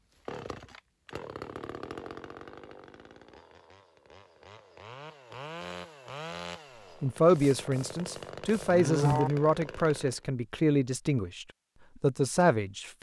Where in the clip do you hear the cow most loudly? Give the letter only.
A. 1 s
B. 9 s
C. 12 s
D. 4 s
B.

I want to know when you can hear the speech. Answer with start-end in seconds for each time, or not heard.
7.0-12.9.